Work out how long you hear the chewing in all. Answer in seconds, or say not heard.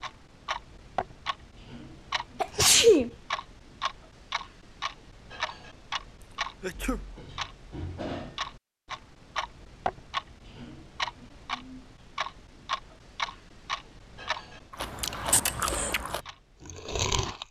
3 s.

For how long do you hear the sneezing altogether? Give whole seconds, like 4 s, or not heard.
2 s.